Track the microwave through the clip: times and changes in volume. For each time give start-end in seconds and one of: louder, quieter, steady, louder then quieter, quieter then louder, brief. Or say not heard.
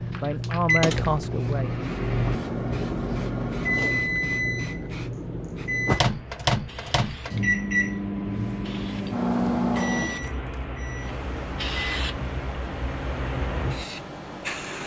0.0-14.8 quieter.